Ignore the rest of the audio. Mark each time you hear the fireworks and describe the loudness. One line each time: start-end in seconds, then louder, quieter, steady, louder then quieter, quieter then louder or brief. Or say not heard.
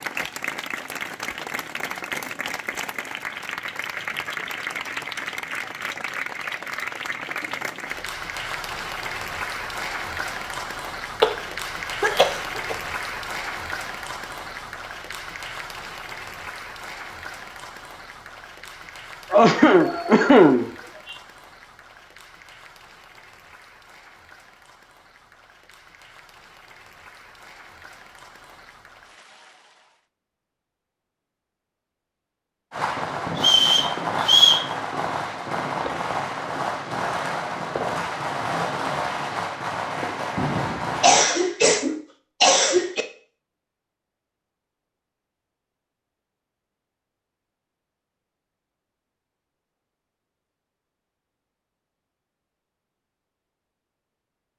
32.7-41.2 steady.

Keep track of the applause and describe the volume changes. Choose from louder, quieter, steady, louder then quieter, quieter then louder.
quieter.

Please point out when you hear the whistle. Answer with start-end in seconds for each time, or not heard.
33.4-34.6.